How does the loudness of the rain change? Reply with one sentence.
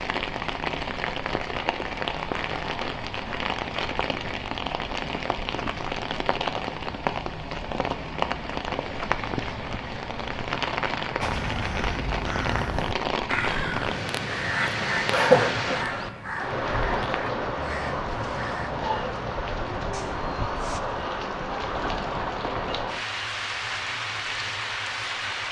The volume of the rain stays about the same.